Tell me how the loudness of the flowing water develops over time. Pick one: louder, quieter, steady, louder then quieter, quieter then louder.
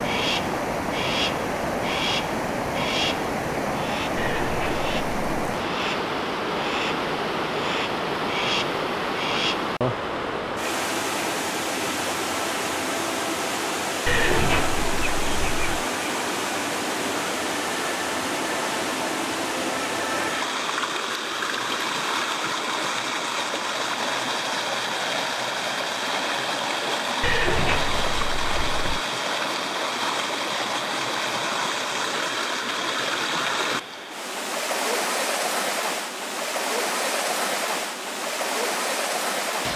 steady.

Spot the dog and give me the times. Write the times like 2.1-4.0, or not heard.
not heard.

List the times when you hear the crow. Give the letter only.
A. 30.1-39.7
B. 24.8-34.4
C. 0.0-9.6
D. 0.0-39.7
C.